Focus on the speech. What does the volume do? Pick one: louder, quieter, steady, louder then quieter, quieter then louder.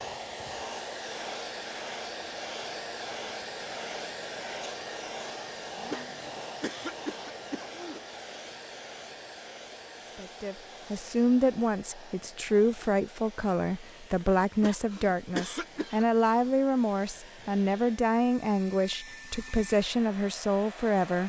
steady.